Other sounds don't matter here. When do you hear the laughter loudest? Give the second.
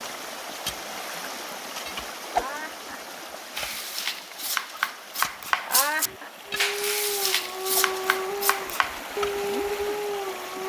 6 s.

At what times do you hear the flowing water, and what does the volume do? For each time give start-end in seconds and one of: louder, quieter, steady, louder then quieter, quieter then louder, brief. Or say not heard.
0.0-10.6 quieter then louder.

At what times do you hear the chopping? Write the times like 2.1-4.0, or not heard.
3.5-9.0.